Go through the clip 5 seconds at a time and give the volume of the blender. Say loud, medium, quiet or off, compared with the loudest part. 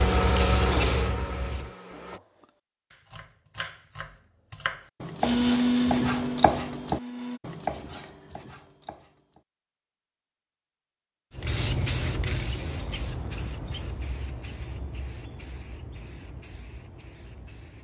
loud, loud, off, off.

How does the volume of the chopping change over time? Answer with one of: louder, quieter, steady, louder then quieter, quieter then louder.
louder then quieter.